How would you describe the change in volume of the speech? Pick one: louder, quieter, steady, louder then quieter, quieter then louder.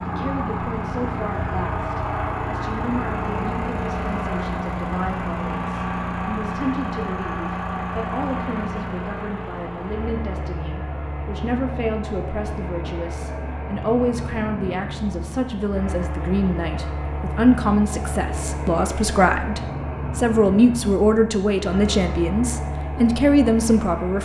louder.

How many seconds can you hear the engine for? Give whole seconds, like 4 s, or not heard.
24 s.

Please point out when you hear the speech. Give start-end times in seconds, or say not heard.
0.1-24.2.